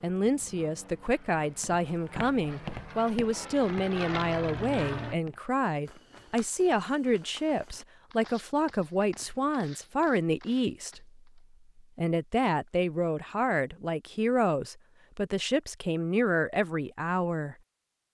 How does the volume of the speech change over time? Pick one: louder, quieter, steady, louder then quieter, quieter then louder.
steady.